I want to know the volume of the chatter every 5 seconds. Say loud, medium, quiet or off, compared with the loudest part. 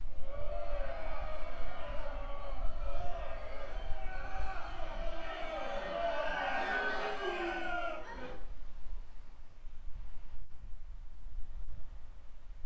medium, loud, off.